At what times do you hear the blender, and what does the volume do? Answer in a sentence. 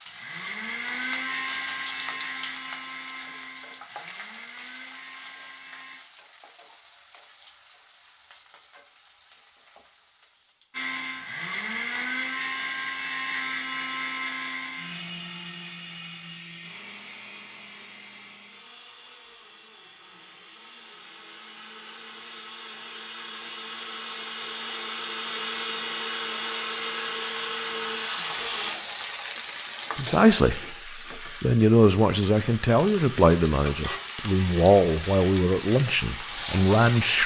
You can hear the blender from 0.0 to 6.0 s, getting quieter; and from 10.7 to 28.8 s, getting quieter then louder.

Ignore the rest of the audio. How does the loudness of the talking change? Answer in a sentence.
The loudness of the talking stays about the same.